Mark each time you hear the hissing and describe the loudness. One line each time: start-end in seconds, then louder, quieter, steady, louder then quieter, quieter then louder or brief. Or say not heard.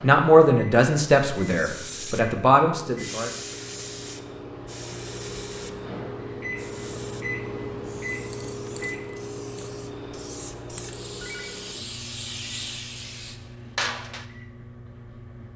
1.4-14.2 quieter then louder.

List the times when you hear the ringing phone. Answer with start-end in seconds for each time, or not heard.
11.2-11.6.